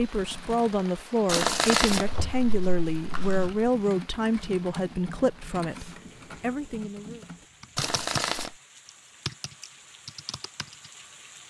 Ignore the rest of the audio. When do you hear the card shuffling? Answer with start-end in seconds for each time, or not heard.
1.2-3.7, 7.8-8.6.